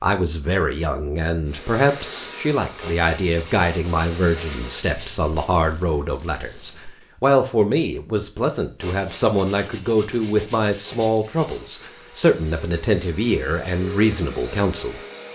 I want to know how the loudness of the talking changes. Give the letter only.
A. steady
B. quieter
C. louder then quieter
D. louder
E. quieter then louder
A.